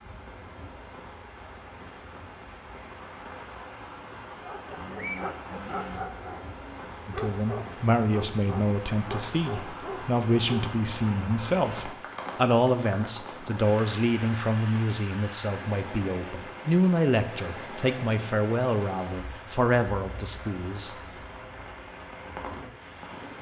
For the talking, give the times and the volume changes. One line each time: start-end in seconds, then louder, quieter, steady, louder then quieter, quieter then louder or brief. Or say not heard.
7.0-20.9 steady.